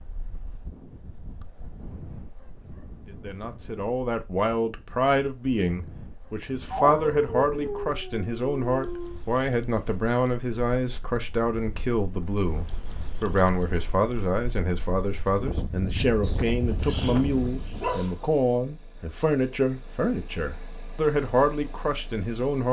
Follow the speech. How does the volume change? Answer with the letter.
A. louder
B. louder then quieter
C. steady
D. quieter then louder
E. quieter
C.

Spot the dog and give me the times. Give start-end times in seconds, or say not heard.
6.7-9.2, 16.2-18.2.